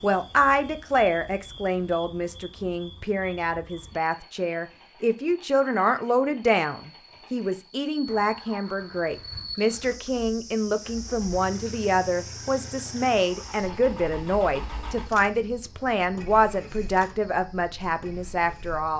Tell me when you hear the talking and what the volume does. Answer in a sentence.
You can hear the talking from 0.0 to 18.9 s, at a steady volume.